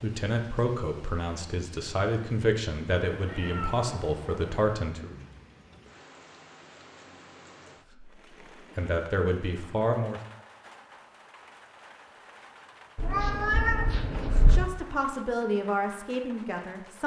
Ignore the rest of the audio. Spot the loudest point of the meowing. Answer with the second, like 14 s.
14 s.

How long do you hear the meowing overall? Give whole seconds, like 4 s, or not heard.
3 s.